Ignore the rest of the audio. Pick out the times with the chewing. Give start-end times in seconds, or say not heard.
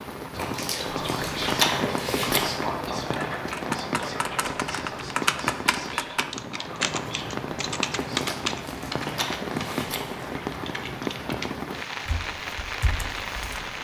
0.3-2.6, 8.2-10.3.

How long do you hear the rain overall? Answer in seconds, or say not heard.
14 s.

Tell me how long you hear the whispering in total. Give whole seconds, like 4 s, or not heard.
8 s.